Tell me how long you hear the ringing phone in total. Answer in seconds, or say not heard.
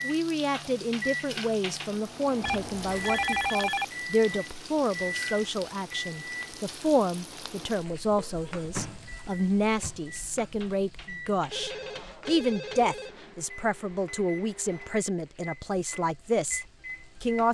4 s.